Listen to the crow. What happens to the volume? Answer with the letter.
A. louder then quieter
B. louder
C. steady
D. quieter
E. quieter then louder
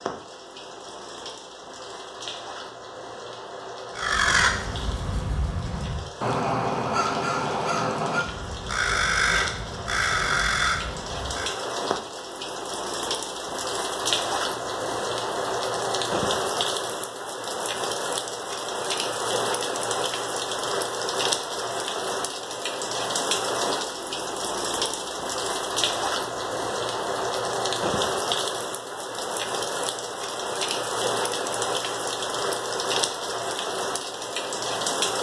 C.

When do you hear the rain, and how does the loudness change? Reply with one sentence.
You can hear the rain from 0.0 to 35.1 s, getting louder.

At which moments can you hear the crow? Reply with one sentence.
The crow can be heard from 4.0 to 11.5 s.